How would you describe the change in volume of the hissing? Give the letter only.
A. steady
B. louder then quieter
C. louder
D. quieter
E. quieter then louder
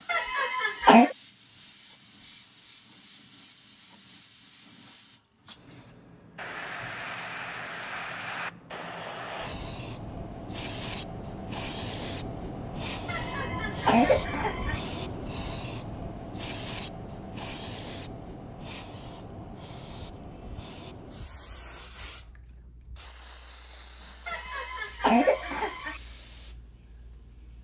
B.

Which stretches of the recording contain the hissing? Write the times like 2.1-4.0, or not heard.
0.0-27.5.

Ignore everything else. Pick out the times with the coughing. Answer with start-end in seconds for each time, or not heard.
0.1-1.1, 13.1-14.8, 24.2-26.0.